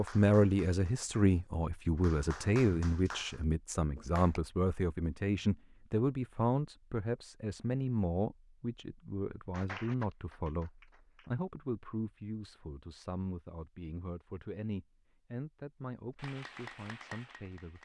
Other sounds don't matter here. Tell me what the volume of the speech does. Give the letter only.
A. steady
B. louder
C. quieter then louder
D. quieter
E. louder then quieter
D.